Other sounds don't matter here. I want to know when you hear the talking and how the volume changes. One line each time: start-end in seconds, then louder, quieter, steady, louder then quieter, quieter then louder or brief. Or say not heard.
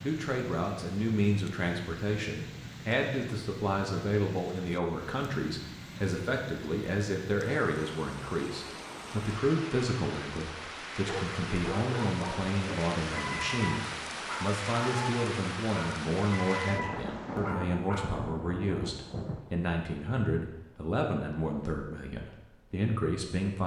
0.0-23.6 steady.